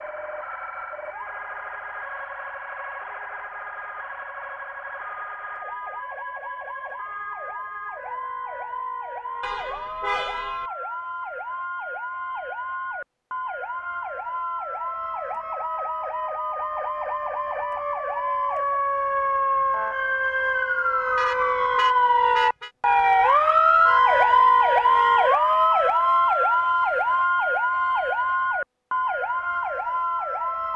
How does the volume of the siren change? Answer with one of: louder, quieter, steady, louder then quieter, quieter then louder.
louder.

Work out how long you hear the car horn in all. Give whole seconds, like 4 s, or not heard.
3 s.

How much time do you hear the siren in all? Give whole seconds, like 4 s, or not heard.
31 s.